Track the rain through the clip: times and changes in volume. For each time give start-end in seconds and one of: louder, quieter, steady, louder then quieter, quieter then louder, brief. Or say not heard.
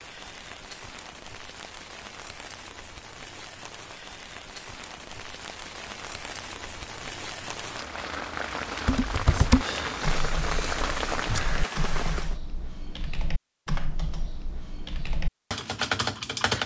0.0-12.4 louder.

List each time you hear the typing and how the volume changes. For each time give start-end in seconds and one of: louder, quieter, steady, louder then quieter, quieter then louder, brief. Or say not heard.
8.8-16.6 quieter then louder.